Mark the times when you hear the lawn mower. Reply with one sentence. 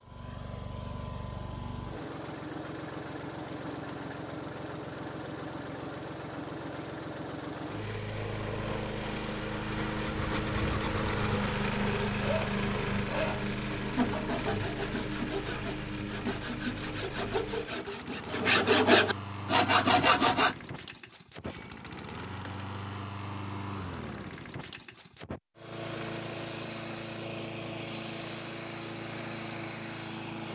The lawn mower can be heard from 0.0 to 30.5 s.